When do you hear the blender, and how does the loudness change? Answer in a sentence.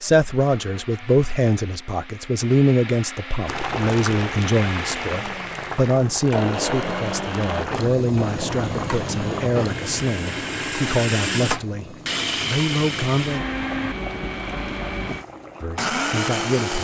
You can hear the blender from 0.0 to 16.7 s, getting louder.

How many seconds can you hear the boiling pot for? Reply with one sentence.
You can hear the boiling pot for 13 seconds altogether.